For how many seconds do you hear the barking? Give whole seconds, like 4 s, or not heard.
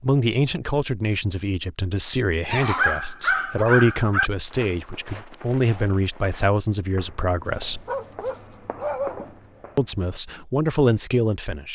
4 s.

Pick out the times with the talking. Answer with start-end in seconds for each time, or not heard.
0.0-7.8, 9.8-11.7.